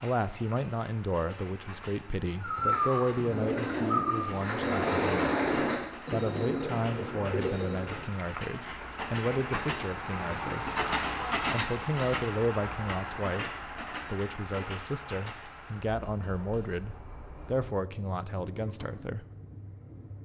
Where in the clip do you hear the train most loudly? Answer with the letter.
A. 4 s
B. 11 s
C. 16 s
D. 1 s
B.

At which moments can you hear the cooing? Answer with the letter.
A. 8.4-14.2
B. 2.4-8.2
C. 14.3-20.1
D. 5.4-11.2
B.